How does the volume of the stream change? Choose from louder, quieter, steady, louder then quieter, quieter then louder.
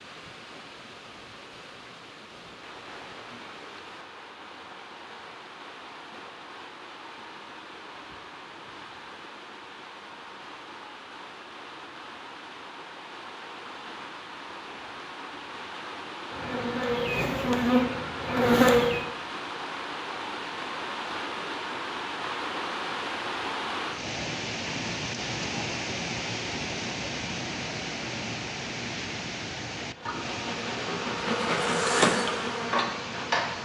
louder.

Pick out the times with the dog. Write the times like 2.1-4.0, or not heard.
not heard.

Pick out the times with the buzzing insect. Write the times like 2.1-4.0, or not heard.
16.2-19.1, 29.9-33.6.